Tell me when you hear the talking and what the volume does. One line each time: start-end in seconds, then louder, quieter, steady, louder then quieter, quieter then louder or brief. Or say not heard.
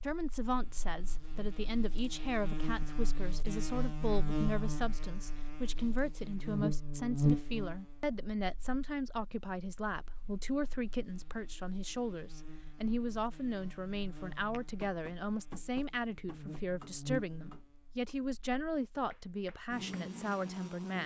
0.0-21.0 steady.